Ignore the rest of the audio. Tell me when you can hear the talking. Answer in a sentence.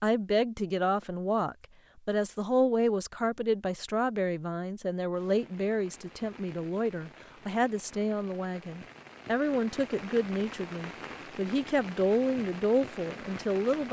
The talking can be heard from 0.0 to 13.8 s.